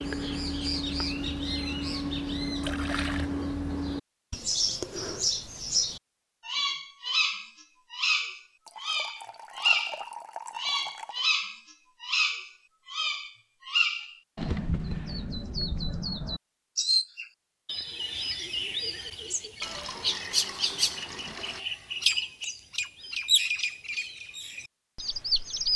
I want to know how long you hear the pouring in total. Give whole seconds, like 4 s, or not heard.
5 s.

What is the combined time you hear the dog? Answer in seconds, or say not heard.
not heard.